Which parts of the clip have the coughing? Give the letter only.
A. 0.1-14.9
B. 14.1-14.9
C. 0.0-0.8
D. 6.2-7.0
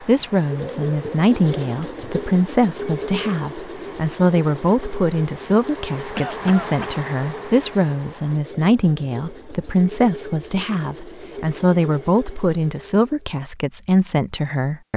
D.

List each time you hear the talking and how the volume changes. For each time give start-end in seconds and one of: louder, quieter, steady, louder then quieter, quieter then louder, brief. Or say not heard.
0.1-14.9 steady.